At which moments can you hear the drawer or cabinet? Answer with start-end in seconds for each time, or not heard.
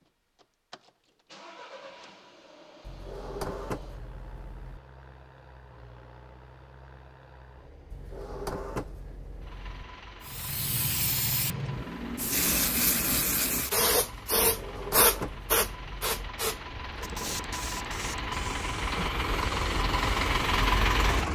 2.8-4.8, 7.9-9.8, 14.4-16.3.